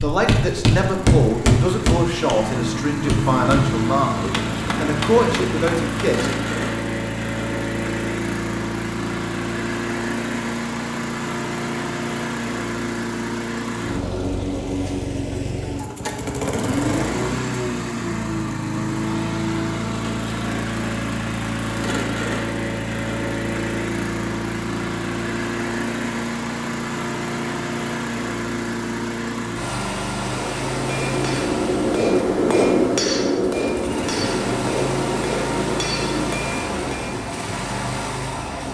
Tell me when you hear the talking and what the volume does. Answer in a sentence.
The talking can be heard from 0.0 to 6.3 s, at a steady volume.